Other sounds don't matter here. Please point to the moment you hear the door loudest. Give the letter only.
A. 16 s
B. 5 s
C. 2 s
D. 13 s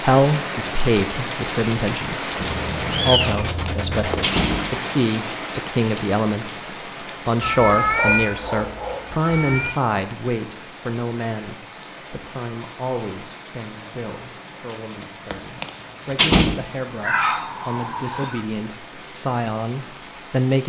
A.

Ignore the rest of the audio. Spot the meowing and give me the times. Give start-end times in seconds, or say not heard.
2.4-4.4, 7.4-9.8, 17.0-18.4.